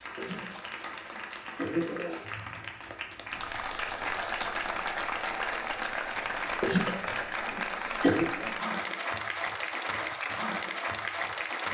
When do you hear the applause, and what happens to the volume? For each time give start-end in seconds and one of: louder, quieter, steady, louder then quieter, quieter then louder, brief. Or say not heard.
0.0-11.6 louder.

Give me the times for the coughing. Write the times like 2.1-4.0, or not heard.
0.1-2.2, 6.6-8.3.